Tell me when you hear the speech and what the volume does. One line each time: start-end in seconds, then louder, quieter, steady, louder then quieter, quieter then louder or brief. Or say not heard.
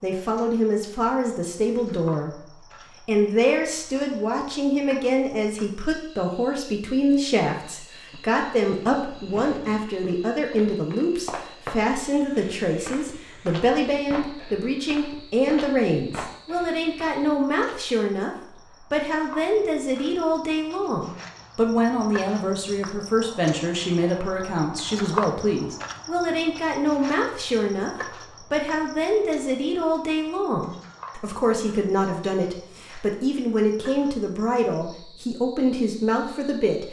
0.0-36.8 steady.